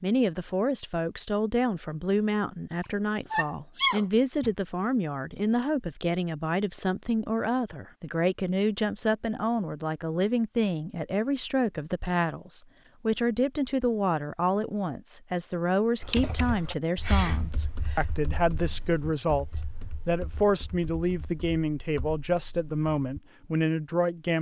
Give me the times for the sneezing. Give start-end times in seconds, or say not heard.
2.8-4.5, 17.0-18.1.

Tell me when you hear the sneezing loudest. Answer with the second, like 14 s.
4 s.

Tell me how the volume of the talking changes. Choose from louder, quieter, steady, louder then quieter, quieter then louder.
steady.